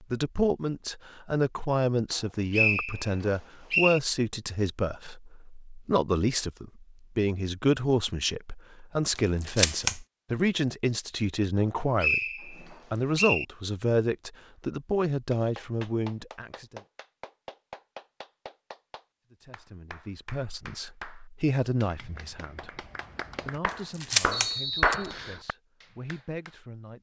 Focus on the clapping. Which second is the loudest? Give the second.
25 s.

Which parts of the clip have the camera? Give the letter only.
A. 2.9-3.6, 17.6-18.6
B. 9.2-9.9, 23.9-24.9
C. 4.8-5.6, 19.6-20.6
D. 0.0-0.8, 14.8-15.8
B.